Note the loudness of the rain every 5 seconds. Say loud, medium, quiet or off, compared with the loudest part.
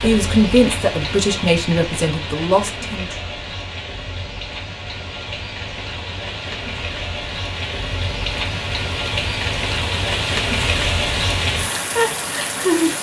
medium, medium, loud.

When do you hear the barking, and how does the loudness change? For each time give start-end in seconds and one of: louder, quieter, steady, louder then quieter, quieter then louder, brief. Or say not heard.
not heard.